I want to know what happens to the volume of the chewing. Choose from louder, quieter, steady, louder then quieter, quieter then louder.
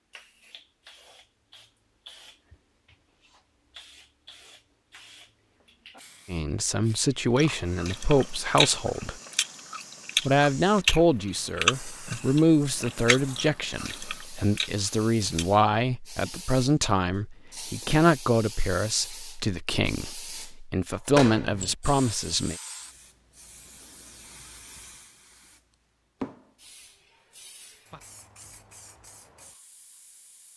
louder then quieter.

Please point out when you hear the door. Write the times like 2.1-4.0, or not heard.
21.1-21.8.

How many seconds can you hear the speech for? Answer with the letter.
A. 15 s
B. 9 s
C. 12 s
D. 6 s
A.